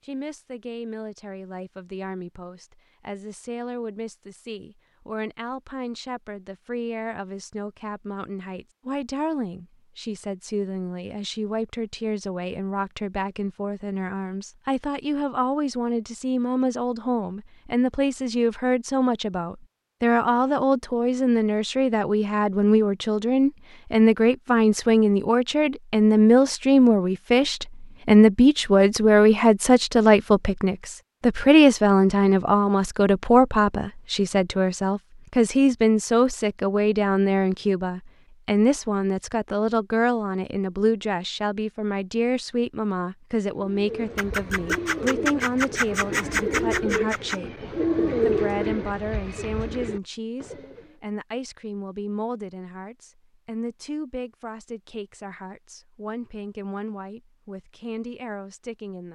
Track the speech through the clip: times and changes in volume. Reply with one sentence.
You can hear the speech from 0.1 to 59.0 s, getting louder then quieter.